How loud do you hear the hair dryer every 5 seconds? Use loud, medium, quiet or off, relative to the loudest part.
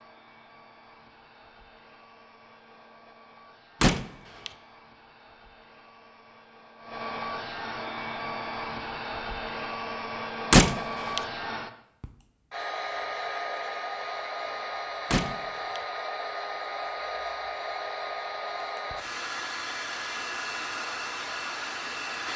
quiet, loud, loud, loud, loud.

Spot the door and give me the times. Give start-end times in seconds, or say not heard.
3.8-4.5, 10.5-11.2, 15.1-15.8.